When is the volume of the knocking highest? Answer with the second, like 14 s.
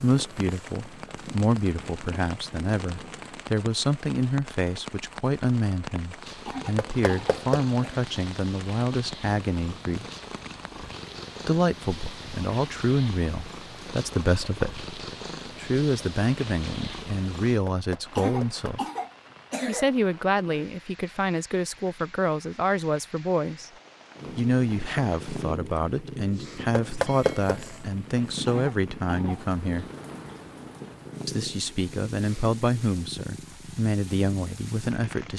27 s.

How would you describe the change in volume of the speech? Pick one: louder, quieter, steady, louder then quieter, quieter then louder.
steady.